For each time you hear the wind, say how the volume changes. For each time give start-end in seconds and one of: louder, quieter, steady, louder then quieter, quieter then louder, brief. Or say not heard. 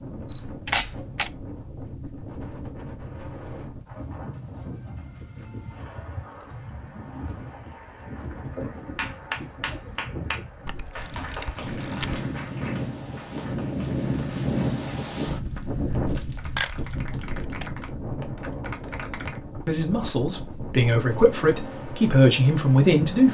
0.0-23.2 louder then quieter.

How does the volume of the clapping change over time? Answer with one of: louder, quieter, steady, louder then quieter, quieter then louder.
quieter then louder.